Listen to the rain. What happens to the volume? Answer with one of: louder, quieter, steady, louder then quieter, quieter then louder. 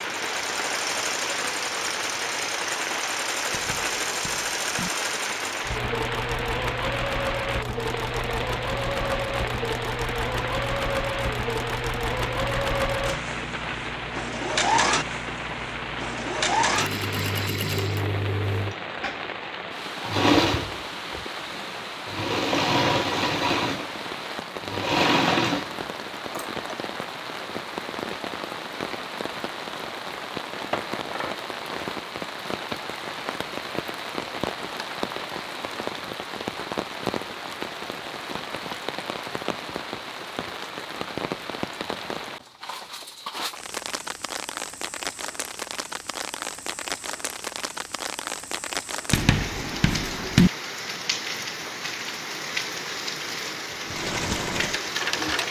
steady.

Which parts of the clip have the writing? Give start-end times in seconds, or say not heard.
3.5-4.9, 49.1-50.5.